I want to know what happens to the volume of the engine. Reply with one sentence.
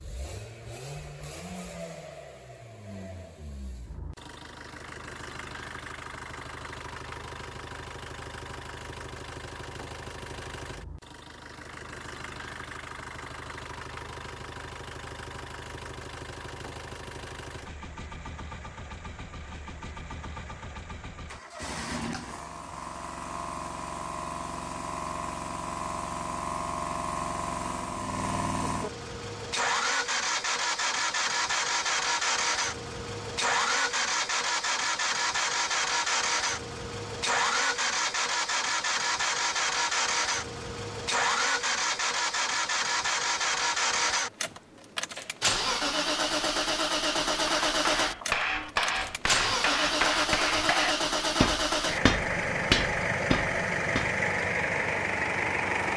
The volume of the engine goes up.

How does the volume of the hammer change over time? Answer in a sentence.
The loudness of the hammer stays about the same.